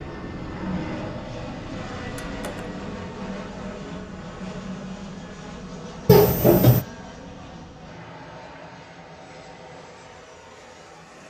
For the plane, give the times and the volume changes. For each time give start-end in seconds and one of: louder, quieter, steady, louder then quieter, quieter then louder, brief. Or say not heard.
0.0-11.2 quieter.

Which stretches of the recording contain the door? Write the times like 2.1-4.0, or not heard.
2.0-2.6, 6.0-6.8.